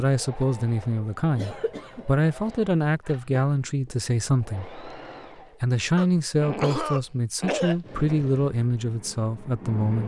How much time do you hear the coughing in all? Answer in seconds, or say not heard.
3 s.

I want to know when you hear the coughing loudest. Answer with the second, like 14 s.
7 s.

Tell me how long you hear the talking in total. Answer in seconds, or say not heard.
9 s.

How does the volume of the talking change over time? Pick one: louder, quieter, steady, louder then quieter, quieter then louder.
steady.